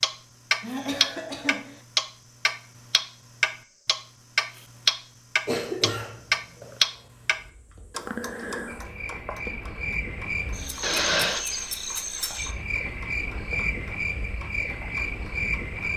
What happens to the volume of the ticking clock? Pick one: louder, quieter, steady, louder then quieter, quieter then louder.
quieter.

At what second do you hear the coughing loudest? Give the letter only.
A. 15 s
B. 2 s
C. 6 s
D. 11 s
D.